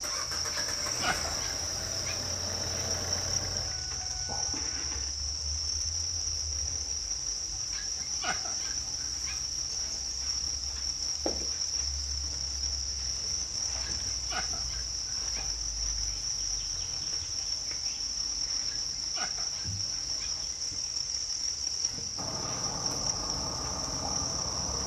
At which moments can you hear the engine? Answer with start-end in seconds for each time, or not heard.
0.0-5.1, 22.1-24.8.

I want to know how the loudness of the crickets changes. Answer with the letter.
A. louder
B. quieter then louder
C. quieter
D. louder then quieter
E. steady
E.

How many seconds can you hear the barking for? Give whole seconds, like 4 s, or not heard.
7 s.